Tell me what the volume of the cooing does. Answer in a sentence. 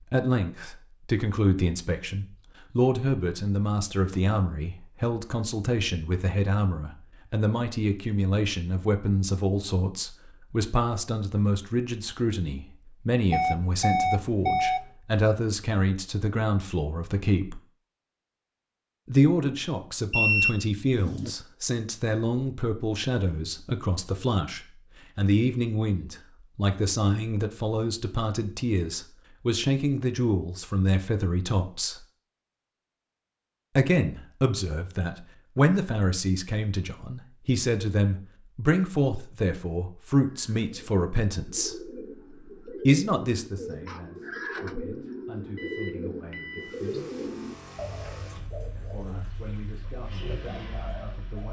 The volume of the cooing goes up, then down.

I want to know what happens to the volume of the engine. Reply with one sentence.
The loudness of the engine goes down, then up.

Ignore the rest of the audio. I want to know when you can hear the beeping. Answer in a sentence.
The beeping can be heard from 13.3 to 14.8 s, from 20.1 to 21.3 s and from 45.5 to 46.8 s.